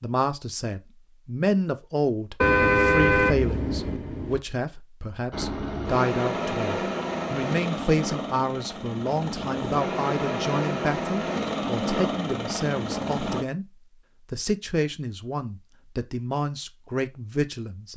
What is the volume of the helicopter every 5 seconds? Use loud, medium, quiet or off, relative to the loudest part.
off, loud, loud, off.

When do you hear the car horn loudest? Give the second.
3 s.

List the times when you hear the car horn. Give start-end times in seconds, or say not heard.
2.4-4.4.